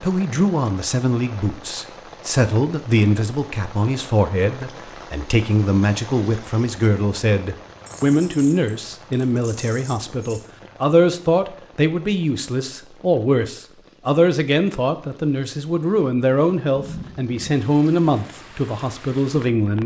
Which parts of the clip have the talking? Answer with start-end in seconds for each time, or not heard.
0.0-19.8.